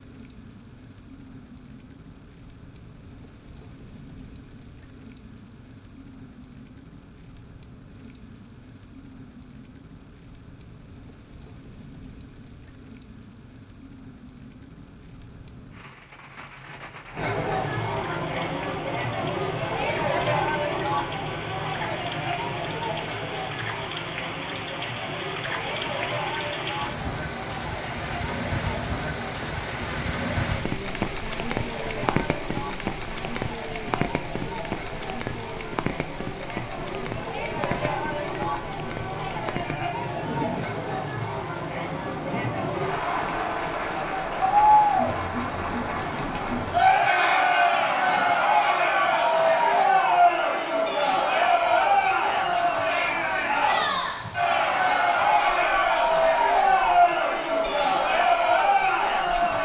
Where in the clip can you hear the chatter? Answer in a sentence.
The chatter can be heard from 17.1 to 59.6 s.